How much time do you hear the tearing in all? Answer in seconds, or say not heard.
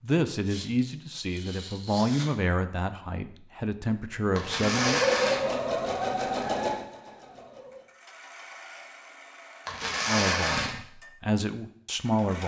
4 s.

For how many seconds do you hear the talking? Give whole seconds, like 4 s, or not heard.
7 s.